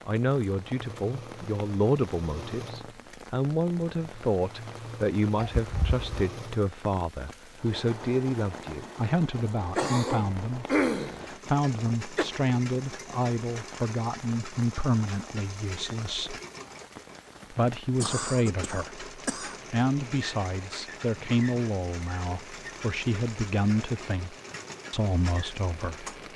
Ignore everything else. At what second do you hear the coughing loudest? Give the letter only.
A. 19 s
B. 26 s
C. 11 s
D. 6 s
C.